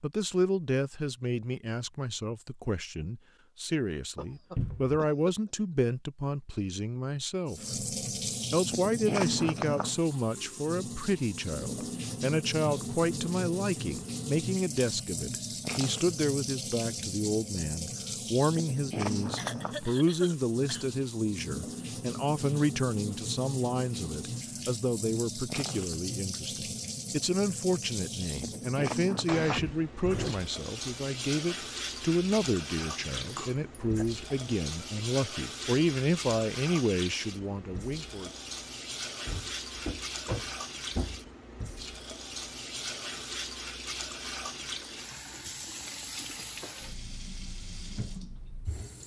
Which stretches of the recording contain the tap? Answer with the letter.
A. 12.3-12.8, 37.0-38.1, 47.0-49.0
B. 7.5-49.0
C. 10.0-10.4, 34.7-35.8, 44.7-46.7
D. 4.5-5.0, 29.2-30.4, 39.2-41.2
B.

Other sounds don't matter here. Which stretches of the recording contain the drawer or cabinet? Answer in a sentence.
You can hear the drawer or cabinet from 4.5 to 5.0 s, from 29.2 to 30.4 s and from 39.2 to 41.2 s.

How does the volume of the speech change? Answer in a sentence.
The volume of the speech stays about the same.